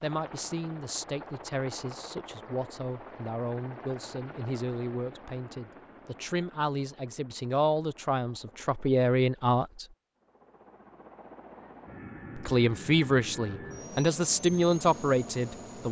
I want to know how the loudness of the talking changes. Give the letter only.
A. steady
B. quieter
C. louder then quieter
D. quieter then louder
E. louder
E.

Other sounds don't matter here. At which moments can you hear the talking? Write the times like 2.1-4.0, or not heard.
0.0-9.8, 12.3-15.8.